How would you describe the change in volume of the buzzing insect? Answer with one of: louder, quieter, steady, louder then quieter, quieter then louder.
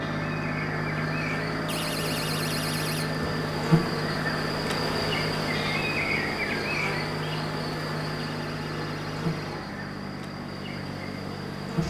louder then quieter.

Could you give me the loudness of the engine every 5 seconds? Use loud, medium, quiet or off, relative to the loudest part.
loud, loud, medium.